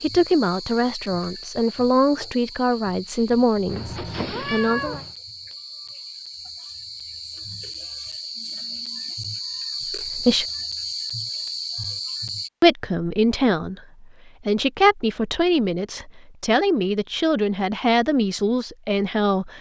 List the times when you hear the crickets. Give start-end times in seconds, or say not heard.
0.0-12.5.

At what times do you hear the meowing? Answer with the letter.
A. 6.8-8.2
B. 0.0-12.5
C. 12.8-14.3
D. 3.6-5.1
D.